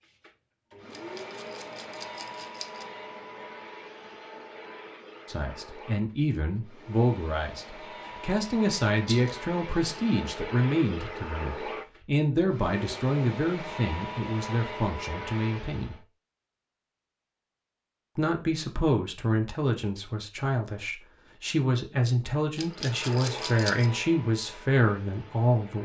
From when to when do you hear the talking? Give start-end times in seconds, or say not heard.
5.2-15.9, 18.1-25.7.